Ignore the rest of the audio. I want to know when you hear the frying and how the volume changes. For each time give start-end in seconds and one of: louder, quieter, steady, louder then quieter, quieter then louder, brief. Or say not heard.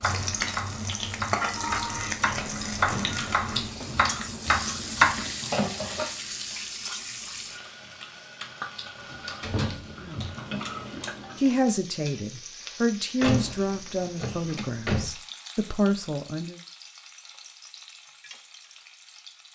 0.0-19.5 quieter.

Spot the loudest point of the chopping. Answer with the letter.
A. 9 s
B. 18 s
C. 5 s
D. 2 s
C.